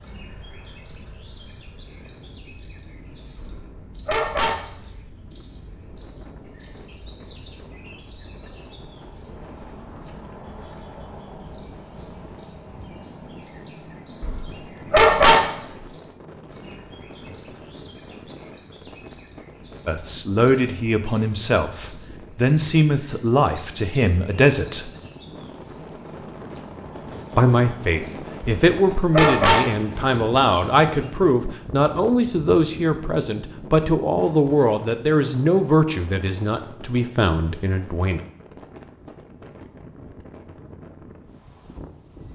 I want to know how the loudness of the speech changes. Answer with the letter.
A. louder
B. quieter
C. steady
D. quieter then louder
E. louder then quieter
C.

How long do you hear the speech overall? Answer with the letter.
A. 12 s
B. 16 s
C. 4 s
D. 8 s
B.